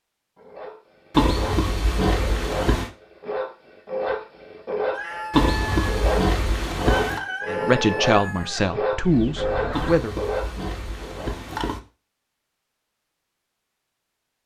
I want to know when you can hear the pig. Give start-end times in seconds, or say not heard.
1.1-2.9, 5.3-7.2, 9.7-11.8.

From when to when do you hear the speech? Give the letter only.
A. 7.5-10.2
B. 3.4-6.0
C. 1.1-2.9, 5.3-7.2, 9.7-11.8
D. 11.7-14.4
A.